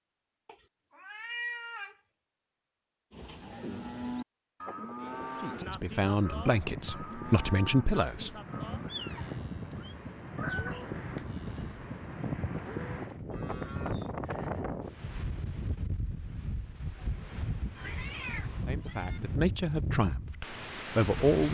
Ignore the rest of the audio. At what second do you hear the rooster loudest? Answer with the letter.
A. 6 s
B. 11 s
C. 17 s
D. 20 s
B.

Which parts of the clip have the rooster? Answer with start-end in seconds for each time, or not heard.
10.3-11.9.